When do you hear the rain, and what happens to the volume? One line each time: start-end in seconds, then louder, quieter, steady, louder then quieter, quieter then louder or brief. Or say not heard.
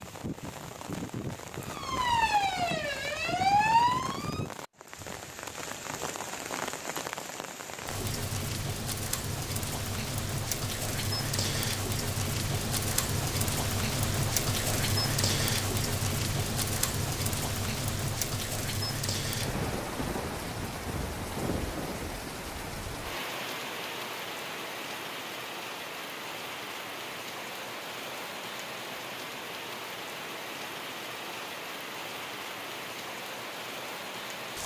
0.0-34.6 louder then quieter.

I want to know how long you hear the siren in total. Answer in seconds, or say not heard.
3 s.